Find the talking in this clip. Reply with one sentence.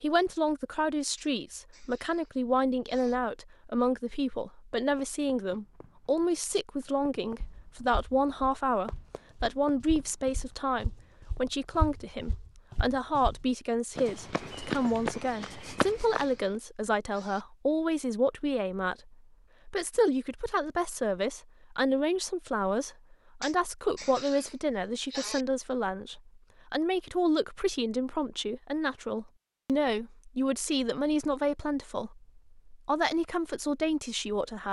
You can hear the talking from 0.0 to 34.6 s.